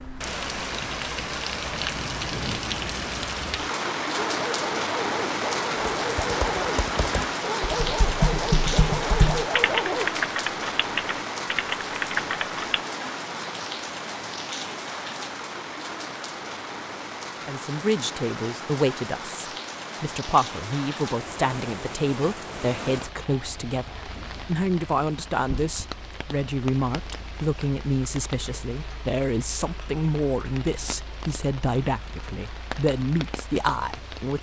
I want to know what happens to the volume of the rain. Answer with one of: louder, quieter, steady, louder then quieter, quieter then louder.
quieter.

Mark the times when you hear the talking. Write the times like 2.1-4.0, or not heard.
17.4-34.3.